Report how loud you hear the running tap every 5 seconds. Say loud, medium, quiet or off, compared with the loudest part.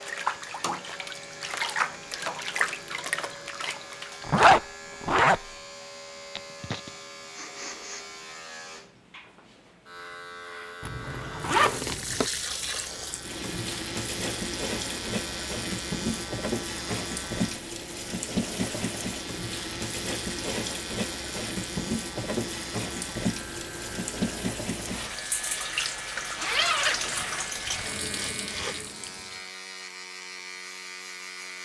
loud, off, loud, loud, loud, loud, off.